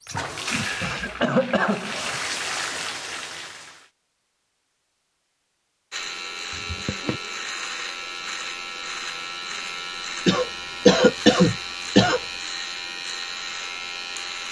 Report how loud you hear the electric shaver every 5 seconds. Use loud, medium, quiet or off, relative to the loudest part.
off, loud, loud.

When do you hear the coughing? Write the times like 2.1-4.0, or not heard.
0.2-2.2, 6.5-7.2, 10.2-12.2.